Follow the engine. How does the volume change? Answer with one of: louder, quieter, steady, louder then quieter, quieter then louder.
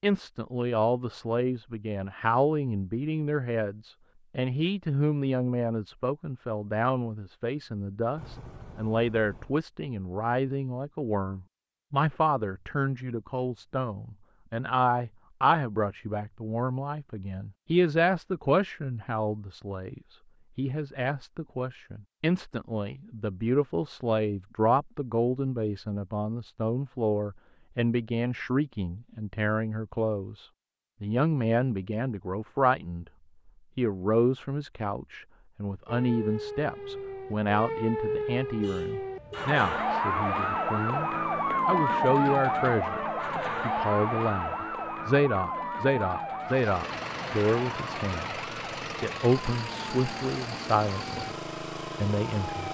steady.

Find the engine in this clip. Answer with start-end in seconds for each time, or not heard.
46.4-52.6.